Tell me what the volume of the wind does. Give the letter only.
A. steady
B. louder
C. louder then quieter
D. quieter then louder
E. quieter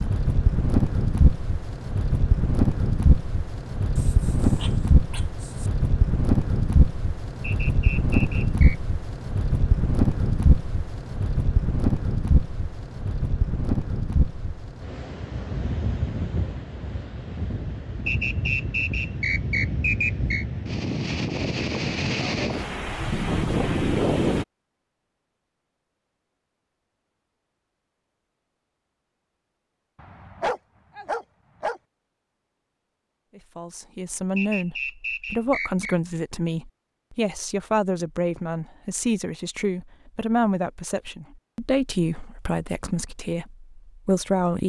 D.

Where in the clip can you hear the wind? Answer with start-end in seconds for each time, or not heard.
0.0-24.4.